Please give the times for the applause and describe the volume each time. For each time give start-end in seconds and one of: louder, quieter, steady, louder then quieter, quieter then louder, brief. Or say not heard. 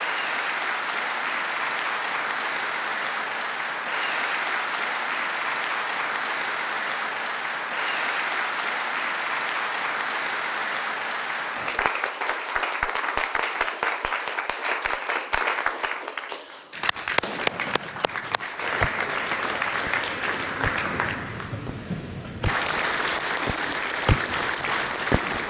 0.0-25.4 steady.